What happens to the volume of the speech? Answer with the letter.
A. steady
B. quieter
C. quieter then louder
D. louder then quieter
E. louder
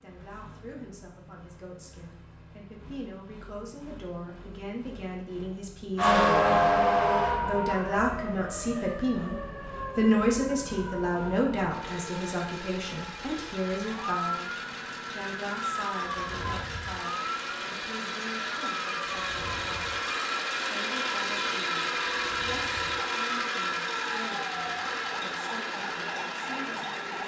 D.